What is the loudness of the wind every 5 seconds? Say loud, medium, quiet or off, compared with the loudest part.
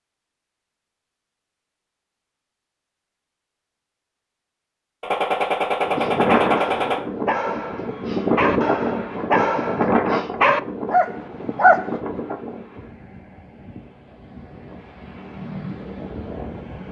off, loud, medium, medium.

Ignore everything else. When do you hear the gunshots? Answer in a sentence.
The gunshots can be heard from 5.0 to 7.0 s.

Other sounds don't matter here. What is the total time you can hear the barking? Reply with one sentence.
You can hear the barking for 6 seconds altogether.